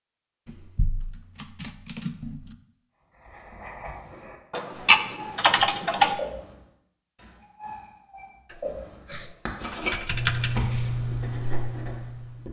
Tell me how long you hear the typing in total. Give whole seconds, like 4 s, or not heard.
6 s.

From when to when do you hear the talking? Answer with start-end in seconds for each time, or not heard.
not heard.